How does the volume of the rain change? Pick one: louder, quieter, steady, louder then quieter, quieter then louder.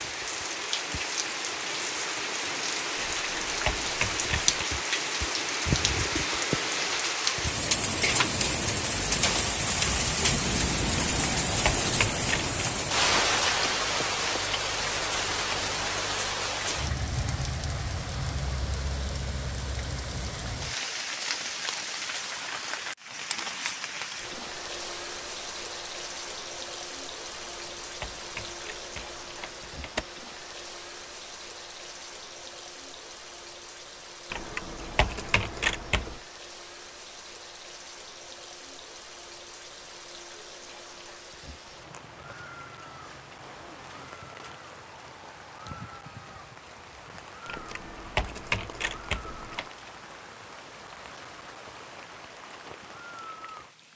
quieter.